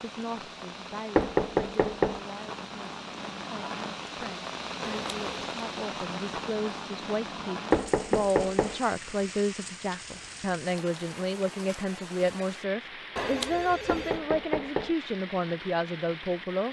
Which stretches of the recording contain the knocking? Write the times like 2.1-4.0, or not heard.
1.1-2.2, 7.7-8.8, 13.8-14.9.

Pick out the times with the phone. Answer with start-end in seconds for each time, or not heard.
4.8-5.5, 13.2-14.2.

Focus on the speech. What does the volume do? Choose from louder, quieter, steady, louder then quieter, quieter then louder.
louder.